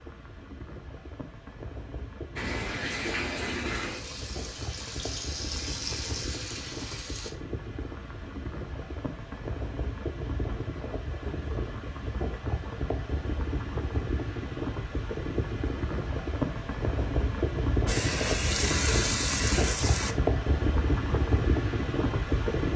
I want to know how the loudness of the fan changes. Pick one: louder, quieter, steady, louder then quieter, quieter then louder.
louder.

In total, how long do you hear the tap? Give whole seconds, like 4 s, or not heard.
7 s.